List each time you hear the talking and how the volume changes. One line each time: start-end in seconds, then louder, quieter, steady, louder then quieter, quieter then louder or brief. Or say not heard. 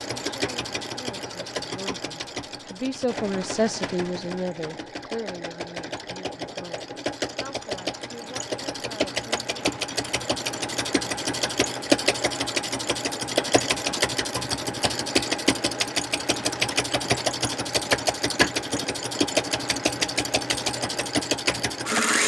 0.0-9.7 louder then quieter.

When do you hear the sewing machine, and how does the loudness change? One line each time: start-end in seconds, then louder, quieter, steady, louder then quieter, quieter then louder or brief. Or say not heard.
0.0-22.2 louder.